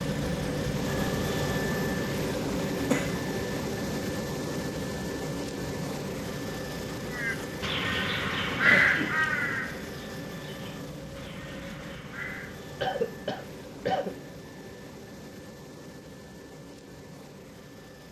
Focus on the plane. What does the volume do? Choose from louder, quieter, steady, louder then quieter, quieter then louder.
quieter.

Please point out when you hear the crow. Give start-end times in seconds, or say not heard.
7.1-12.7.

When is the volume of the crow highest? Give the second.
9 s.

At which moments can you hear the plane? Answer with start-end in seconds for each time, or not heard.
0.0-18.0.